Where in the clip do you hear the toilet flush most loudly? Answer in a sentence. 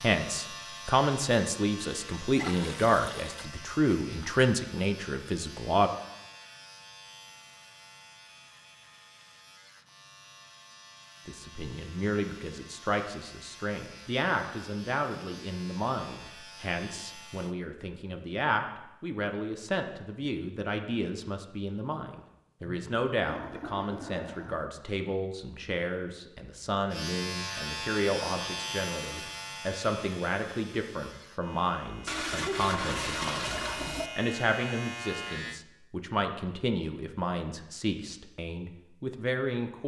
The volume of the toilet flush peaks at 33 seconds.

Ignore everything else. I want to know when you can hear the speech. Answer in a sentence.
The speech can be heard from 0.0 to 5.9 s and from 11.2 to 39.8 s.